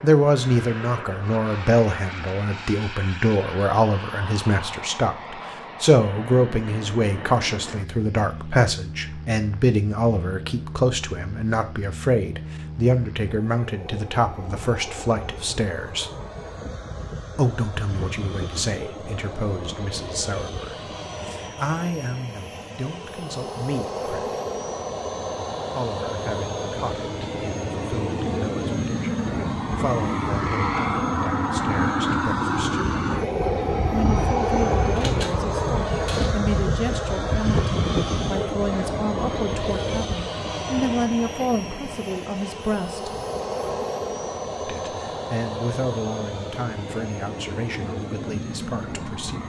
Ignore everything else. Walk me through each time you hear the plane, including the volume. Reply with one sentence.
You can hear the plane from 0.0 to 49.4 s, getting louder then quieter.